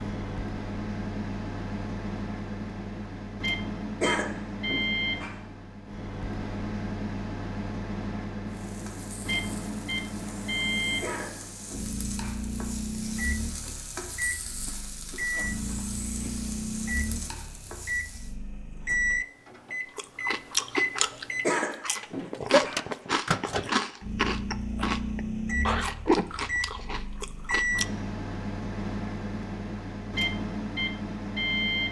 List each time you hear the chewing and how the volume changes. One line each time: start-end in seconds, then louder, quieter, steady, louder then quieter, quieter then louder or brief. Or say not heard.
19.9-27.9 steady.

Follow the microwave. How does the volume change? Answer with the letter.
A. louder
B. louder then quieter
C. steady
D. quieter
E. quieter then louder
C.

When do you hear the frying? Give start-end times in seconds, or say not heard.
8.4-18.4.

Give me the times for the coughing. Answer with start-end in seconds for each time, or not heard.
4.0-5.4, 11.0-12.4, 21.4-22.9.